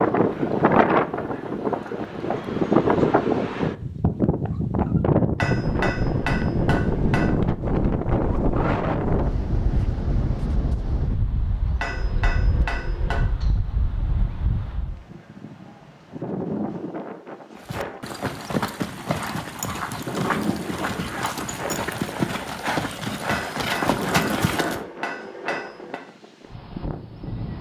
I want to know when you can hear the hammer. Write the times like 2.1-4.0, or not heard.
5.3-7.3, 11.8-13.2, 23.2-26.0.